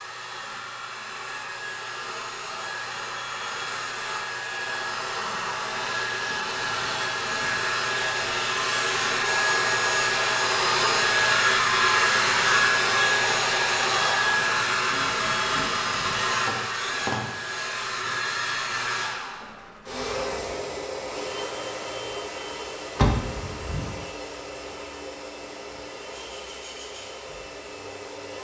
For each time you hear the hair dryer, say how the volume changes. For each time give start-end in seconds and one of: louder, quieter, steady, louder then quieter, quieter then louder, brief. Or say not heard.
0.0-28.3 louder then quieter.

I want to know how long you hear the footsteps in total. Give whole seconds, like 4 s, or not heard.
not heard.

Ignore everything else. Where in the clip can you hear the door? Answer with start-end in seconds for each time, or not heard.
22.9-23.9.